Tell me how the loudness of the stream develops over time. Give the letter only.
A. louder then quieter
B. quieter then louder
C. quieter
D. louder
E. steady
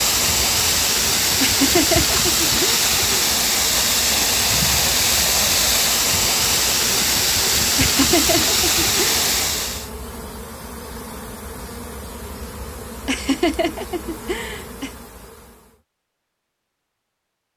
E.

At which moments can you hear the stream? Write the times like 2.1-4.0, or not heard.
0.0-9.9.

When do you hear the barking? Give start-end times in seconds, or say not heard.
not heard.